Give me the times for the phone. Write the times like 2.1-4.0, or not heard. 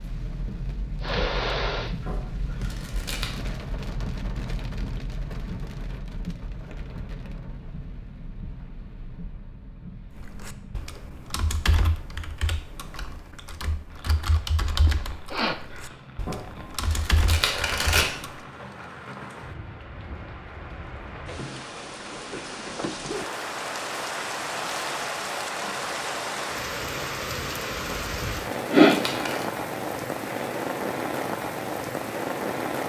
not heard.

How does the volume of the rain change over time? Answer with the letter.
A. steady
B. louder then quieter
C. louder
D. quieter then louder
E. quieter
D.